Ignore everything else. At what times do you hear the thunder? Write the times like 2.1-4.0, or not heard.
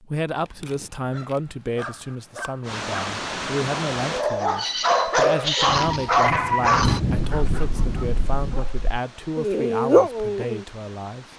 5.7-8.7.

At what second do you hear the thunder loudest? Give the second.
7 s.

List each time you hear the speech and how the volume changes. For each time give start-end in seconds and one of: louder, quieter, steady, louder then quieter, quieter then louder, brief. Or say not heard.
0.0-11.2 steady.